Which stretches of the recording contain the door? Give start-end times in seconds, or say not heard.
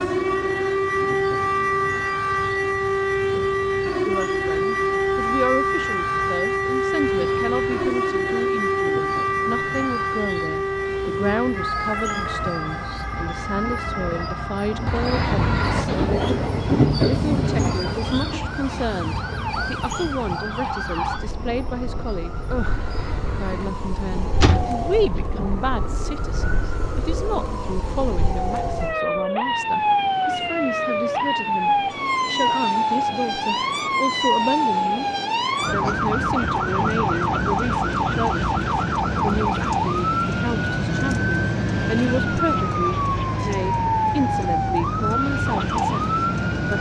24.4-25.2.